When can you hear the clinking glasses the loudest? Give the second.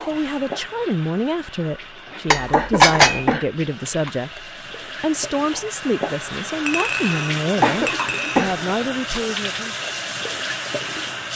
3 s.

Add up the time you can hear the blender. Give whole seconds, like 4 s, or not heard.
not heard.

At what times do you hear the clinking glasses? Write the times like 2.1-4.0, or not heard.
2.3-3.3, 6.7-8.4.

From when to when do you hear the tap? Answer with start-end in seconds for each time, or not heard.
0.0-11.3.